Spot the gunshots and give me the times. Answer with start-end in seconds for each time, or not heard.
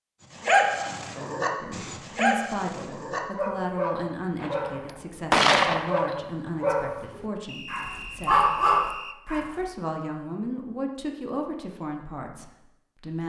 4.4-6.2.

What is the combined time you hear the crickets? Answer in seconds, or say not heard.
not heard.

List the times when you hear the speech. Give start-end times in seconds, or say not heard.
1.6-13.2.